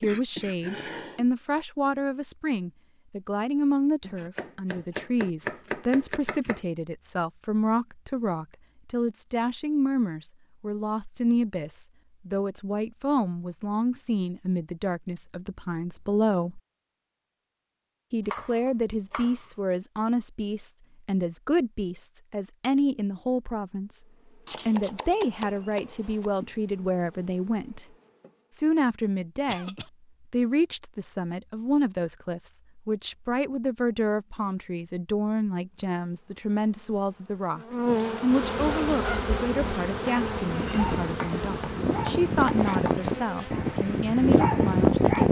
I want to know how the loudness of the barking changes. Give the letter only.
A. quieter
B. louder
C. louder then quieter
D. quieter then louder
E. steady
B.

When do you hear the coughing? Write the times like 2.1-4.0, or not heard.
0.0-1.2, 29.4-29.9.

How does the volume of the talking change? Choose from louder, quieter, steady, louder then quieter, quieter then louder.
steady.